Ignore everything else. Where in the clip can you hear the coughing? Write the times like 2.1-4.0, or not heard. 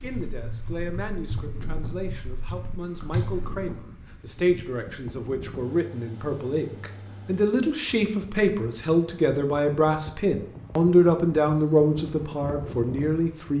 not heard.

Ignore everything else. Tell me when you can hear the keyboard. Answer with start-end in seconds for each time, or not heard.
0.0-3.6.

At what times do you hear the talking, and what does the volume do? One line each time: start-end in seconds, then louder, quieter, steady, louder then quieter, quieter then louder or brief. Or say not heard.
0.0-13.5 louder.